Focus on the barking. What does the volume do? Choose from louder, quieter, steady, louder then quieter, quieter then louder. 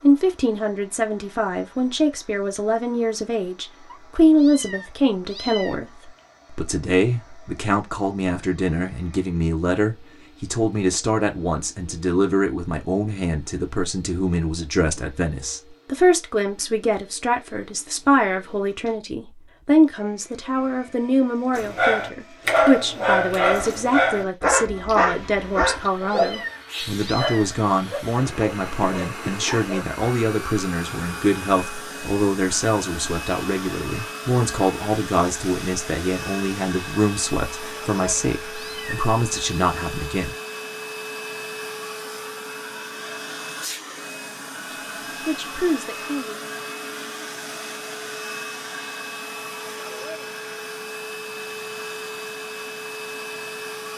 quieter.